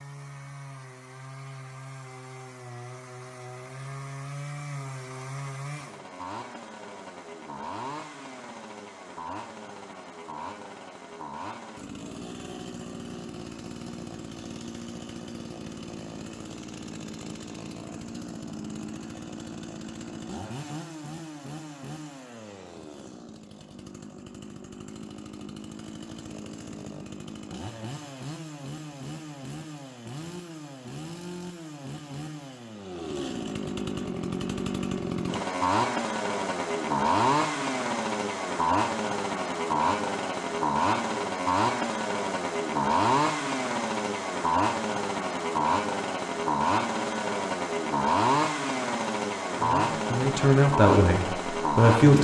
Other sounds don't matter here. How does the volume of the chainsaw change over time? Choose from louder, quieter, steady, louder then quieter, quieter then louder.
louder.